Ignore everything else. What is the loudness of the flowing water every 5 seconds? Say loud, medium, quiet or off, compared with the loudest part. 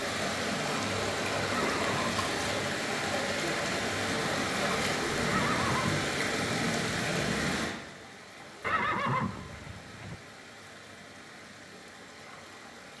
loud, loud, quiet.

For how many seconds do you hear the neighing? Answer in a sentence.
The neighing can be heard for 3 seconds in total.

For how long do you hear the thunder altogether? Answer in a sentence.
The thunder can be heard for 4 seconds in total.